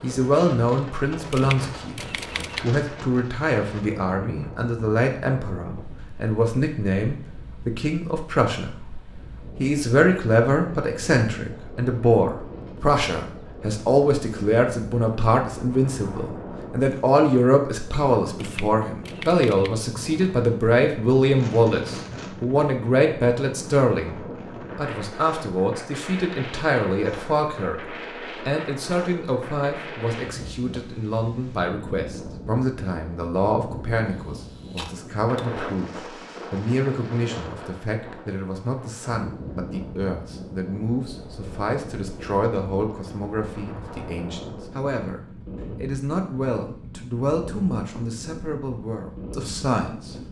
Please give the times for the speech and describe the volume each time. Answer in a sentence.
The speech can be heard from 0.0 to 9.0 s, at a steady volume; and from 9.6 to 50.2 s, getting quieter.